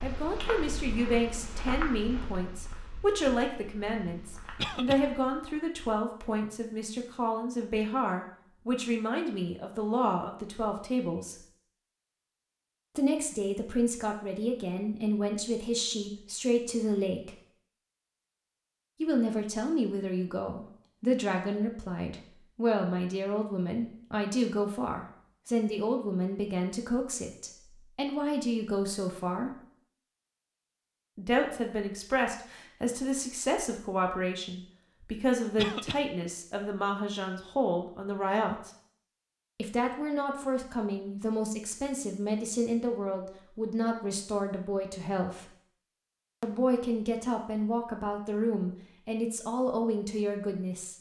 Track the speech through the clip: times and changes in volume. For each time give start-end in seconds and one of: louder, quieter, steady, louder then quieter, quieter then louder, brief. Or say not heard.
0.0-11.3 steady
12.9-17.4 steady
19.0-29.5 steady
31.1-38.7 steady
39.5-45.5 steady
46.4-50.9 steady.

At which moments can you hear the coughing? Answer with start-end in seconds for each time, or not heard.
4.5-5.0, 35.5-36.0.